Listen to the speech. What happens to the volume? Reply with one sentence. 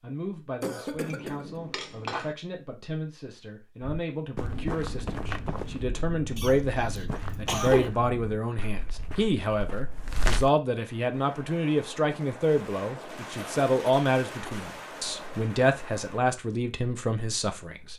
The loudness of the speech goes up.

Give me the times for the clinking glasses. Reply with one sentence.
The clinking glasses can be heard from 1.1 to 2.4 s.